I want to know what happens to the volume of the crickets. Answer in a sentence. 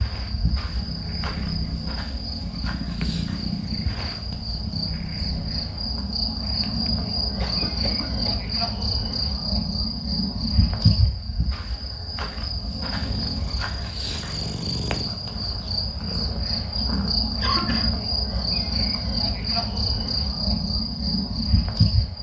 The loudness of the crickets goes up.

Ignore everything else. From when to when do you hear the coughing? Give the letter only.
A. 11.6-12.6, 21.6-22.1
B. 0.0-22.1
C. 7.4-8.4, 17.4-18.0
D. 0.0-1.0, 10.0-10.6
C.